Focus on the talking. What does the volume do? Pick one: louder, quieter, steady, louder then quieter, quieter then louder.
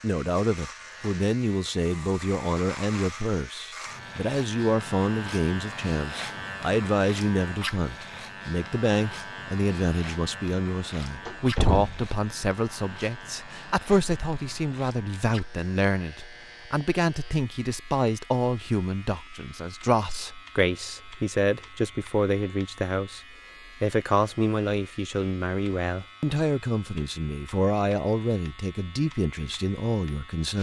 steady.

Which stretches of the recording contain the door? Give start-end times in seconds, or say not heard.
11.2-12.2.